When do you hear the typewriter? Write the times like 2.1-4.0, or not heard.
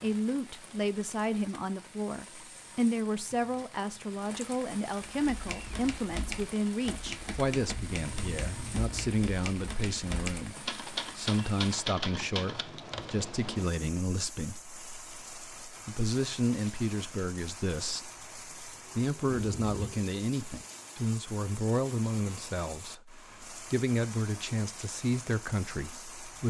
5.0-13.2.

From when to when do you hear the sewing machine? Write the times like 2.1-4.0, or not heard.
not heard.